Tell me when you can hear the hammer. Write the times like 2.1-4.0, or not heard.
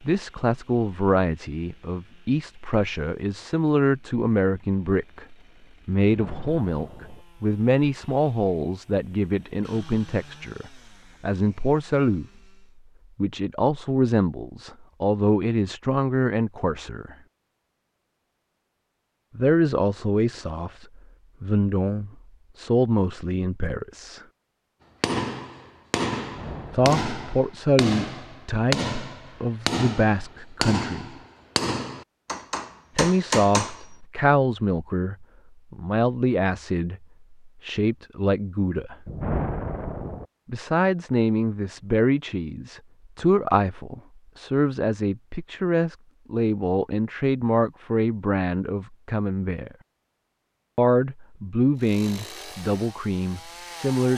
25.0-33.9.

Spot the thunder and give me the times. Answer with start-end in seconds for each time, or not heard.
6.0-7.2, 26.2-27.4, 39.0-40.2.